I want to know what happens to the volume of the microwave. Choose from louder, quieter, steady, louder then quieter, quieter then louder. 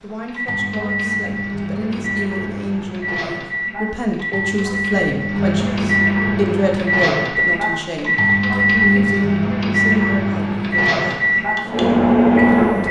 louder.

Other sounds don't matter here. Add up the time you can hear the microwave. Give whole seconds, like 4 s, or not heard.
13 s.